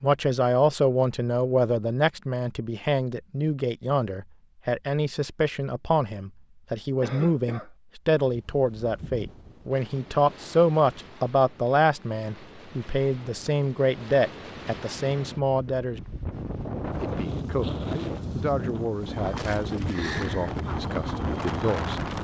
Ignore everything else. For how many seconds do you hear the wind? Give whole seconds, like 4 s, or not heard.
14 s.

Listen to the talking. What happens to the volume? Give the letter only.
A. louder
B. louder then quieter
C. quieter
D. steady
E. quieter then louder
C.